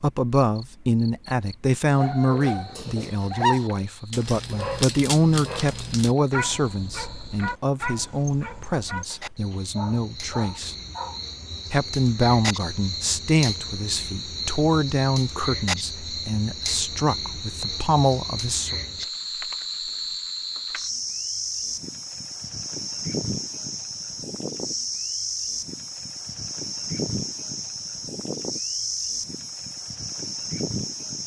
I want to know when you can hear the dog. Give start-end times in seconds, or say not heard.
1.9-11.2.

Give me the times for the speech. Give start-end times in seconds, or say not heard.
0.0-10.8, 11.7-18.8.